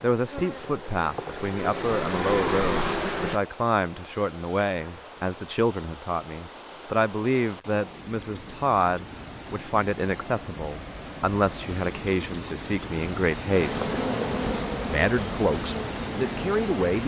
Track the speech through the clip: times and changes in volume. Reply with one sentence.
You can hear the speech from 0.0 to 13.9 s, at a steady volume; and briefly from 14.8 to 17.0 s.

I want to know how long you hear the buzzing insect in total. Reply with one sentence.
The buzzing insect can be heard for 7 seconds in total.